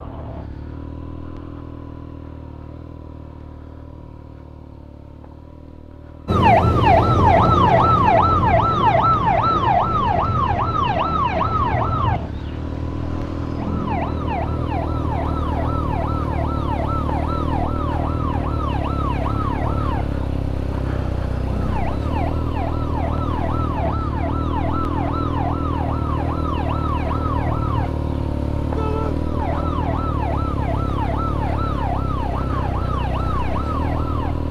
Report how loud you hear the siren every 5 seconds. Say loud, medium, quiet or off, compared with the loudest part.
off, loud, medium, quiet, quiet, quiet, quiet.